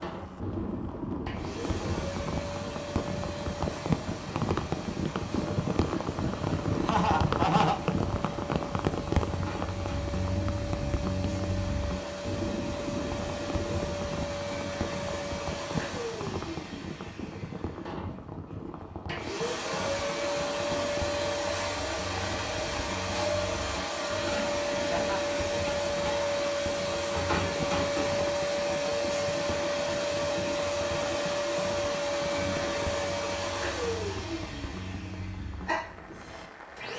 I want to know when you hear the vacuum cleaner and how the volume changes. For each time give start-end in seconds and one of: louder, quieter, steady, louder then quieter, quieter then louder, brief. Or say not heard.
0.0-36.9 louder.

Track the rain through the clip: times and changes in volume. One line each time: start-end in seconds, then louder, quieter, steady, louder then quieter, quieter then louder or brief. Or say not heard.
0.0-36.9 quieter.